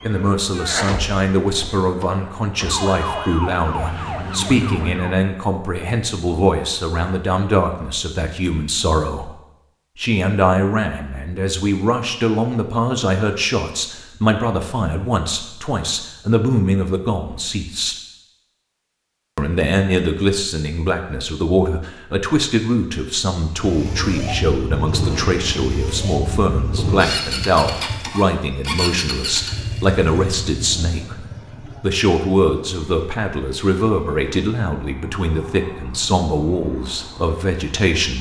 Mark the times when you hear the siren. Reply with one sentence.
You can hear the siren from 0.0 to 5.2 s.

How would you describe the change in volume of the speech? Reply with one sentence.
The loudness of the speech stays about the same.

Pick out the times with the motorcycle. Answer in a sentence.
You can hear the motorcycle from 23.5 to 38.1 s.